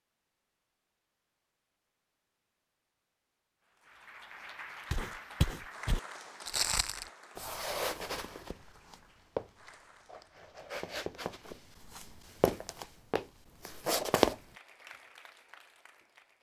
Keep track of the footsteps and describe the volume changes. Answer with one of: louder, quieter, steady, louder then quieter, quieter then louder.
quieter then louder.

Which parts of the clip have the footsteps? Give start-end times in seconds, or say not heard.
4.9-14.4.